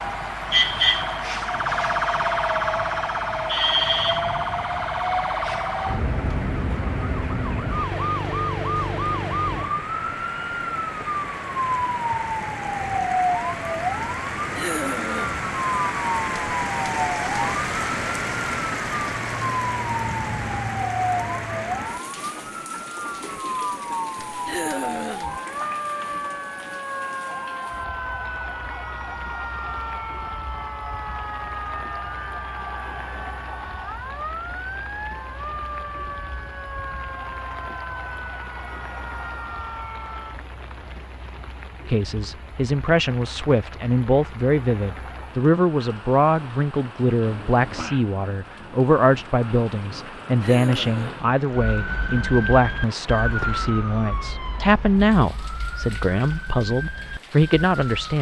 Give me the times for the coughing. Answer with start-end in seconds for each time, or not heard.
14.6-15.4, 24.4-25.4, 50.4-51.3.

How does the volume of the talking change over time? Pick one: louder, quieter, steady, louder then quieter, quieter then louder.
steady.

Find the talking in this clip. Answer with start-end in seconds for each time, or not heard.
41.9-58.1.